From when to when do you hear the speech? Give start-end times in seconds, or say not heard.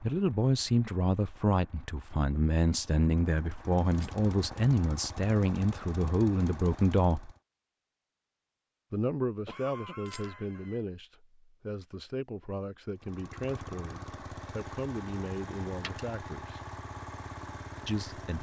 0.0-7.3, 8.9-16.6, 17.9-18.3.